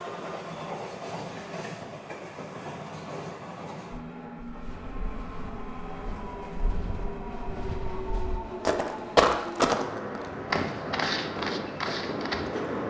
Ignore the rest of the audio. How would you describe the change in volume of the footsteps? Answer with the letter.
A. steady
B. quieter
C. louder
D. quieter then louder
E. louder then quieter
E.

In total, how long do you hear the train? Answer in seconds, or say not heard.
13 s.